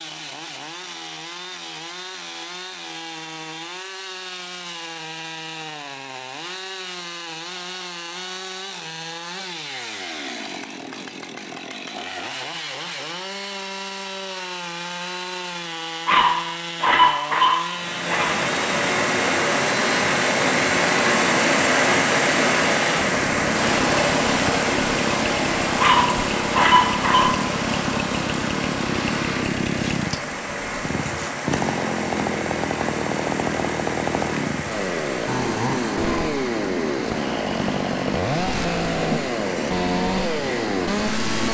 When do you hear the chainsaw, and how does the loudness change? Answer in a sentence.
The chainsaw can be heard from 0.0 to 41.4 s, getting louder.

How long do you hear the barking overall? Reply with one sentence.
The barking can be heard for 4 seconds in total.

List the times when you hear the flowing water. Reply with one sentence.
The flowing water can be heard from 17.7 to 41.4 s.